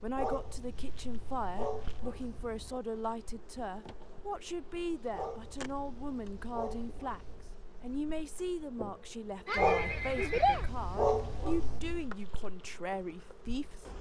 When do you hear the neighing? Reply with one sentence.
The neighing can be heard from 9.4 to 10.7 s.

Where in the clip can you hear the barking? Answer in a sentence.
You can hear the barking from 0.1 to 2.8 s, from 5.1 to 7.5 s and from 9.6 to 12.1 s.